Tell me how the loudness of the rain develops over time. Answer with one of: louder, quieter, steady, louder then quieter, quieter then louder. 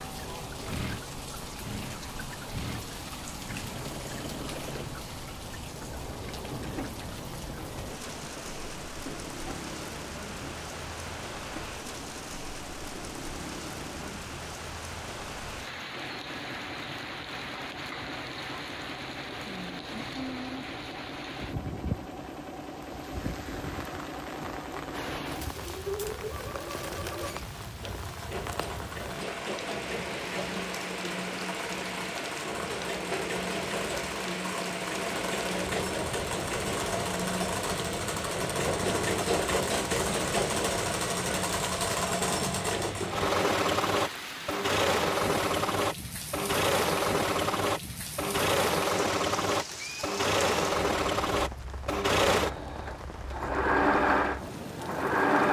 steady.